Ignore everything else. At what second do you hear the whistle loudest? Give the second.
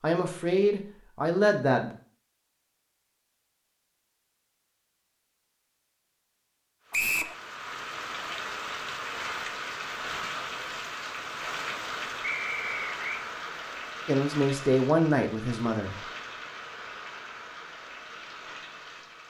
7 s.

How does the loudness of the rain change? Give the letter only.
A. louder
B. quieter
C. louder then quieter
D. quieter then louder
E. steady
B.